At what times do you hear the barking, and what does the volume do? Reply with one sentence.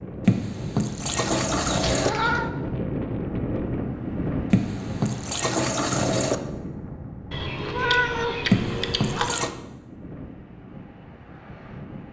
The barking can't be heard in this clip.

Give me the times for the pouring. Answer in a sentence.
You can hear the pouring from 0.2 to 2.1 s, from 4.5 to 6.3 s and from 8.5 to 9.5 s.